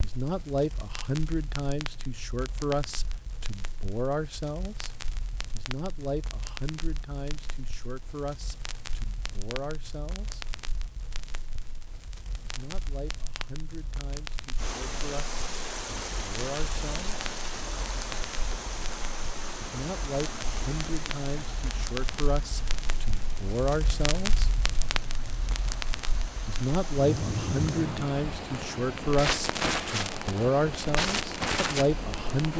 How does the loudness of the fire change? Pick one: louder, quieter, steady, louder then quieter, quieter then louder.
louder.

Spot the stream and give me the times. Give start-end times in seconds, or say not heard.
14.6-32.5.